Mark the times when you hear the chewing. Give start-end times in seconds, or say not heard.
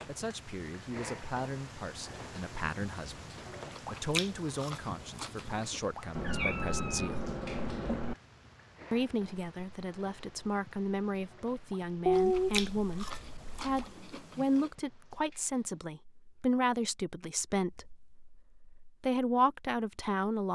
3.7-5.8, 12.1-14.7.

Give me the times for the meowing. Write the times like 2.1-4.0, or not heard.
6.2-8.2, 12.1-13.8.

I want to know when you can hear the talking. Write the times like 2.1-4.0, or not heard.
0.1-7.3, 8.9-20.5.